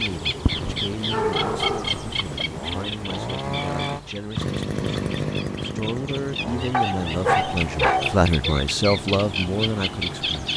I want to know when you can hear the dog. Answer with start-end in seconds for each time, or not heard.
0.5-2.2, 6.7-8.6.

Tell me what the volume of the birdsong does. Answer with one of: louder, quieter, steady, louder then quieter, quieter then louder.
quieter then louder.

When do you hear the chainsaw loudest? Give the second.
5 s.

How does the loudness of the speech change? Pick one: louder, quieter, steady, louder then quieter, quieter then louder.
louder.